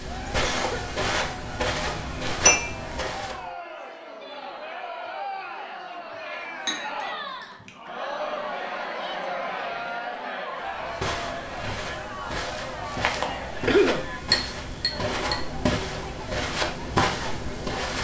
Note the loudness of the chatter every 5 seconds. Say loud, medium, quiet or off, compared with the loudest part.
medium, loud, loud, medium.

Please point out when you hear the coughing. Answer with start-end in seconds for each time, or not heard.
0.2-1.1, 13.7-14.1.